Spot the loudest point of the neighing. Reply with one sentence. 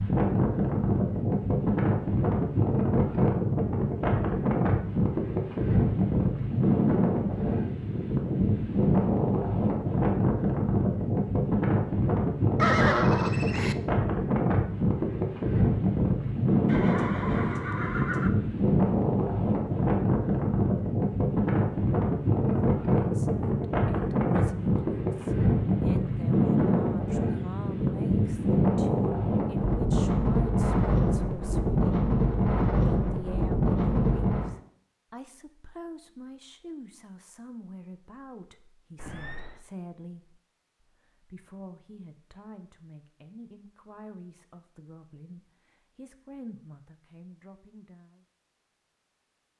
The loudest moment of the neighing is at 13 seconds.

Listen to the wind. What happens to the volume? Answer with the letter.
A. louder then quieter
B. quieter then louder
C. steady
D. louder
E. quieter
C.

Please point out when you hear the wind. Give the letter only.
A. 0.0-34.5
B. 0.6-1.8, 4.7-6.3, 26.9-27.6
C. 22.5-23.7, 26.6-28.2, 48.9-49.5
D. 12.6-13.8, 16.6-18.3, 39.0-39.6
A.